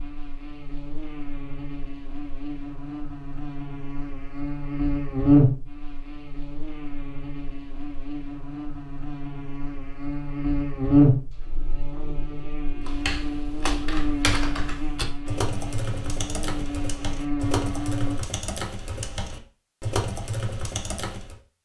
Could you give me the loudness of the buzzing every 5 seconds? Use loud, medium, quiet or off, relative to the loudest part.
medium, loud, loud, medium, off.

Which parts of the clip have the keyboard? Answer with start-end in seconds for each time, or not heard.
12.8-21.4.